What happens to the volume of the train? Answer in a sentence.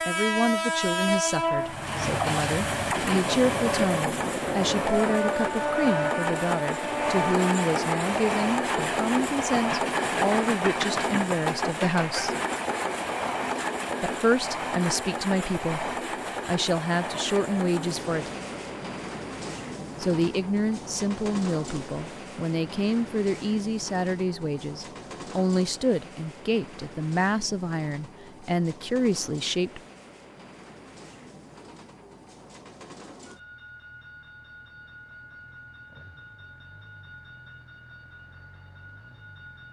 The loudness of the train goes down.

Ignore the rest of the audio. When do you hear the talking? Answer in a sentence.
The talking can be heard from 0.1 to 12.3 s, from 14.0 to 18.3 s and from 20.0 to 29.8 s.